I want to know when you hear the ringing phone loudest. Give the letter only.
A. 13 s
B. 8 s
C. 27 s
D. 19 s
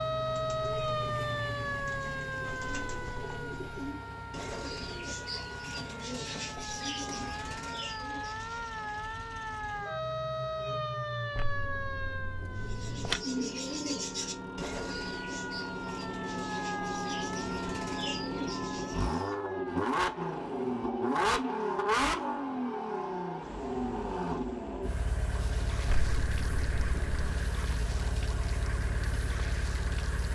A.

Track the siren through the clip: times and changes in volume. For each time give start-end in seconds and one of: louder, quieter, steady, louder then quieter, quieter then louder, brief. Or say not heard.
0.0-30.3 quieter.